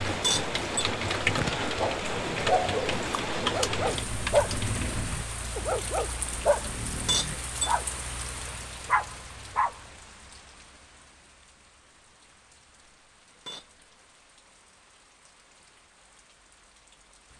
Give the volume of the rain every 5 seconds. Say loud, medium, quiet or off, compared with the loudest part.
loud, medium, quiet, quiet.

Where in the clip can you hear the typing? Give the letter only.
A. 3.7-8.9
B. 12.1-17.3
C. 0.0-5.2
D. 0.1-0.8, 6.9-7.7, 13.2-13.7
C.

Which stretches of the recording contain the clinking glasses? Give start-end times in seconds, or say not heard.
0.1-0.8, 6.9-7.7, 13.2-13.7.